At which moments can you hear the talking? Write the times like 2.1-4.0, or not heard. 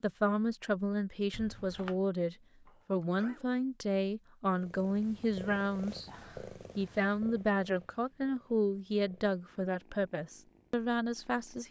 0.0-6.1, 6.8-11.6.